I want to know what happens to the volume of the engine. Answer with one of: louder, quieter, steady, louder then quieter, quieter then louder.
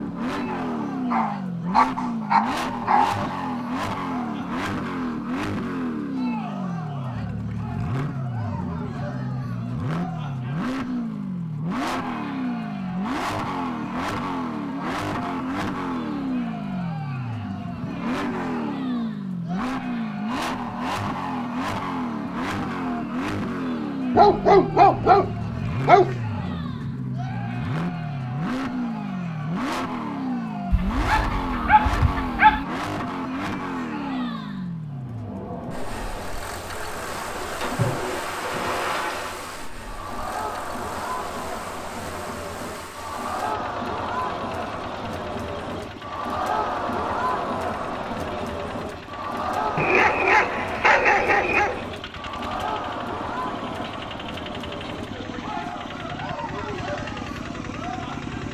quieter.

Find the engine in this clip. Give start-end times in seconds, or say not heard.
0.0-58.4.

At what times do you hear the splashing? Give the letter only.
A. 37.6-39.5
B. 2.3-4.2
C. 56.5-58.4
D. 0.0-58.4
A.